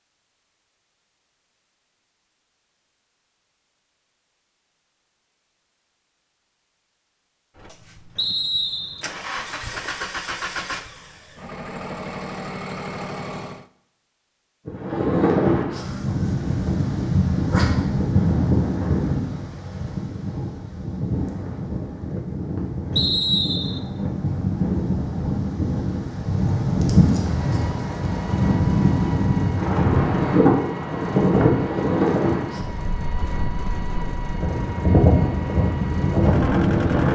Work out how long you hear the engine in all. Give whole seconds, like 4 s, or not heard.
16 s.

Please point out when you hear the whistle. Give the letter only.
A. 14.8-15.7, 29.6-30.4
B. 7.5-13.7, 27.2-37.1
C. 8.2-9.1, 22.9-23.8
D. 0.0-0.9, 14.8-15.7
C.